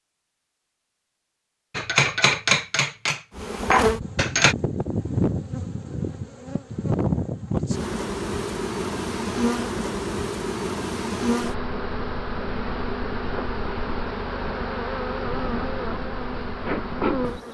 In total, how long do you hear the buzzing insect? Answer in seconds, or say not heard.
14 s.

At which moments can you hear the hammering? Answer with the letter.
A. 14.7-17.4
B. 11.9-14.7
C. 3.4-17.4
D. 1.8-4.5
D.